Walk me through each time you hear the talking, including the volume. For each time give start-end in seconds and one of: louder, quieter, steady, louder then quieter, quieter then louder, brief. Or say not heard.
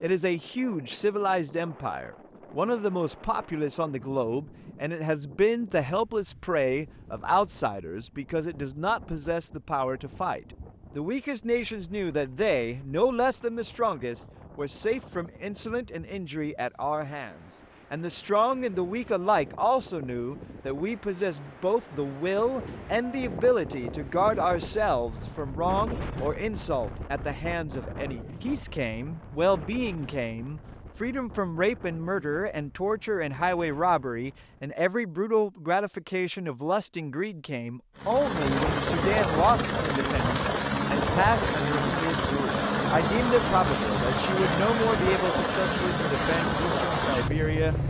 0.0-47.8 steady.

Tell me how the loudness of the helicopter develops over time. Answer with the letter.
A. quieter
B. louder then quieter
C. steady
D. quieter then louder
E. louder
C.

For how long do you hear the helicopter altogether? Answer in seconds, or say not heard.
10 s.